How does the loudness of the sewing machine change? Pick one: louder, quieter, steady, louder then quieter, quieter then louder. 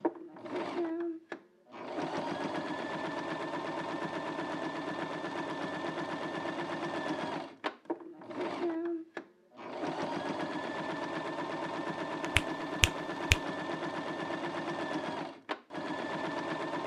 steady.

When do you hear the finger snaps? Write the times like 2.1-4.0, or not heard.
12.2-13.4.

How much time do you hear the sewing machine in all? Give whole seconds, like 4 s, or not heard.
17 s.